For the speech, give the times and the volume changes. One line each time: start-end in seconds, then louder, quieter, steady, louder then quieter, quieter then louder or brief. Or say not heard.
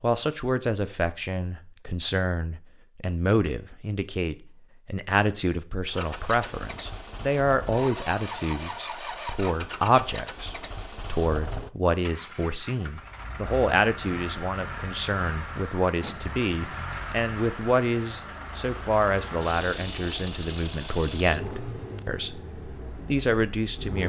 0.0-24.0 steady.